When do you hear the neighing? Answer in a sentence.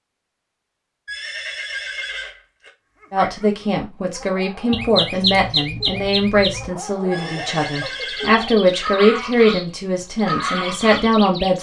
You can hear the neighing from 1.1 to 2.7 s and from 7.1 to 8.8 s.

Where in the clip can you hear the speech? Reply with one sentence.
You can hear the speech from 3.1 to 11.5 s.